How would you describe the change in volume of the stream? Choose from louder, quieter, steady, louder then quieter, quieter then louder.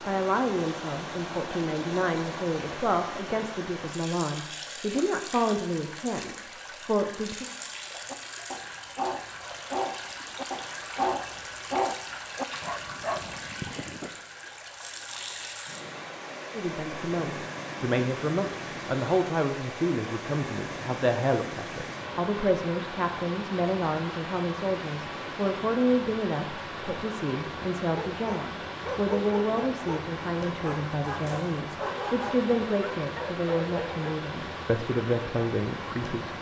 steady.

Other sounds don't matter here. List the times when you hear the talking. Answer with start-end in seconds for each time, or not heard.
0.0-7.5, 16.5-36.3.